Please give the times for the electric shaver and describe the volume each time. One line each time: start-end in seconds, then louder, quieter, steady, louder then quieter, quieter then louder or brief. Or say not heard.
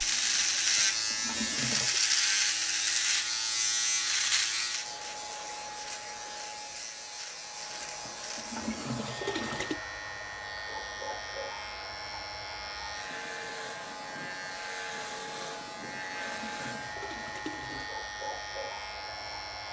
0.0-19.6 quieter.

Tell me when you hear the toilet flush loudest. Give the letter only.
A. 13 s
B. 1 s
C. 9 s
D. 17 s
C.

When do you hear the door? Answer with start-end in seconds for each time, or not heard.
not heard.